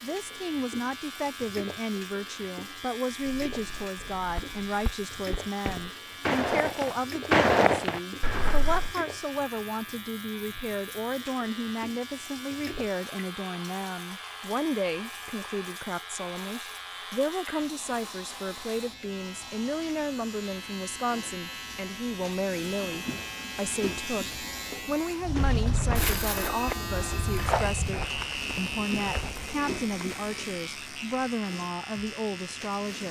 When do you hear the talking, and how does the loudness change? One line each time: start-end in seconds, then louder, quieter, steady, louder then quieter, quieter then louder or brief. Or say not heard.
0.0-33.0 steady.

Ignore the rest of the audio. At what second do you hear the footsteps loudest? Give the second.
7 s.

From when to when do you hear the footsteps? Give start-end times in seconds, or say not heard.
3.5-8.9, 25.2-30.9.